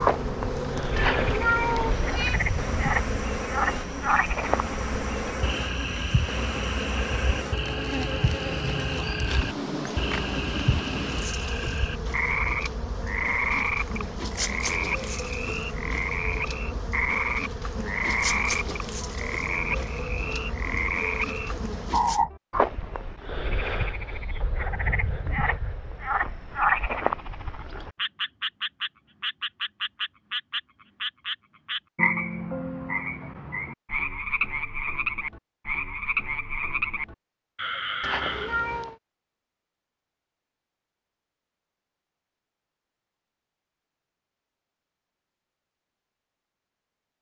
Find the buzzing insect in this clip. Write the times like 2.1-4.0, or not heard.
0.0-22.2.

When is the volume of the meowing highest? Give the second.
2 s.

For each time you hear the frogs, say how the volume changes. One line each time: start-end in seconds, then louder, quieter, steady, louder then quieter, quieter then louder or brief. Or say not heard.
0.0-38.6 steady.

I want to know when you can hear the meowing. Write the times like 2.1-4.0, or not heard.
0.9-2.4, 38.0-39.0.